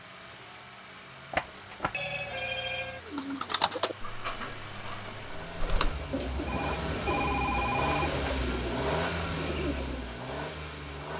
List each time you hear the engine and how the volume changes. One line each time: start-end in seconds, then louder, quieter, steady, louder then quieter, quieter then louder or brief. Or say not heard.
0.0-11.1 louder.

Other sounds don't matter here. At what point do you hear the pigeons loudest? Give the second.
4 s.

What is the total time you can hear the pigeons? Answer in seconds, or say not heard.
7 s.